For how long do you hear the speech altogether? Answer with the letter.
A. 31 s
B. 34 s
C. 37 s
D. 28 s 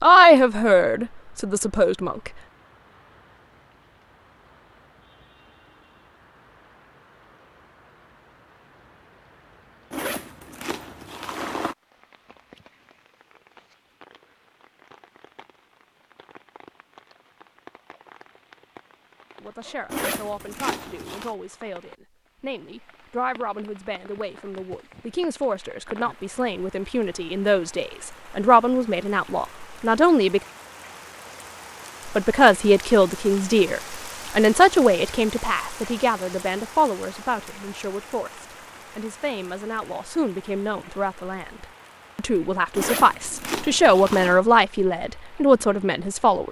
D.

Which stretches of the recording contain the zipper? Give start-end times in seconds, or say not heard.
9.9-11.8, 19.9-21.4, 42.7-44.4.